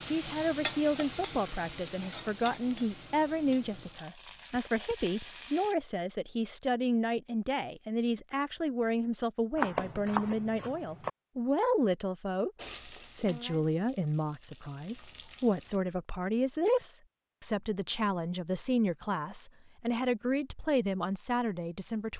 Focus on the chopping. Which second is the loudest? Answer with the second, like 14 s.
10 s.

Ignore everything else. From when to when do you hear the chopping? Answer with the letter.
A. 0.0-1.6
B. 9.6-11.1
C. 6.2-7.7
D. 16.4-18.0
B.